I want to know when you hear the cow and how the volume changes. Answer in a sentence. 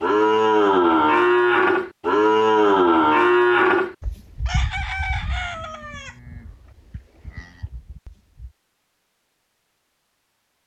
The cow can be heard from 0.0 to 8.5 s, getting quieter.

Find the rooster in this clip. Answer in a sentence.
You can hear the rooster from 4.5 to 6.2 s.